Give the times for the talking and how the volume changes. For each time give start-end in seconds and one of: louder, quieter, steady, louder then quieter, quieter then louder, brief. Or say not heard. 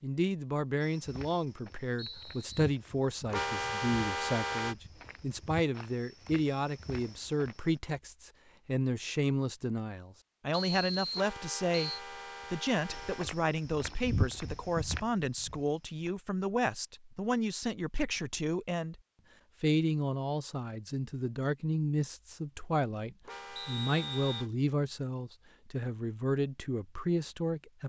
0.0-19.0 steady
19.6-27.8 steady.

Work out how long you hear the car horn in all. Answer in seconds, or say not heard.
5 s.